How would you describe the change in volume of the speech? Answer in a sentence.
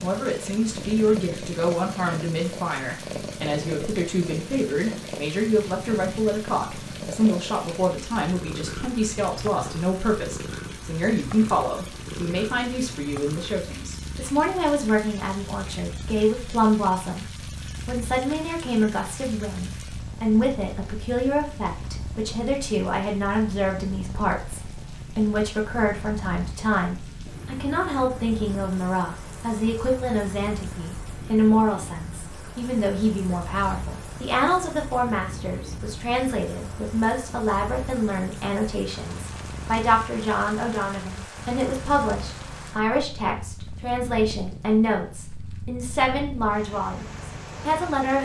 The volume of the speech stays about the same.